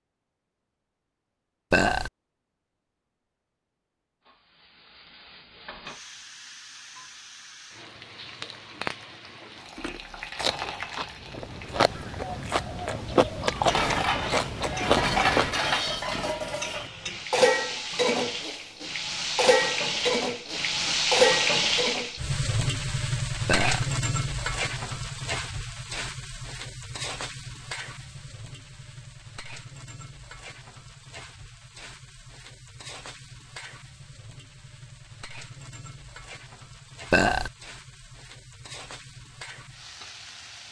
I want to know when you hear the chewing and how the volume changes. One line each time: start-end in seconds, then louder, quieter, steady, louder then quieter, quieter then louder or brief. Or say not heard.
9.8-15.6 louder.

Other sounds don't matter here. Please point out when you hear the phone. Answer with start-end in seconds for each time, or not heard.
not heard.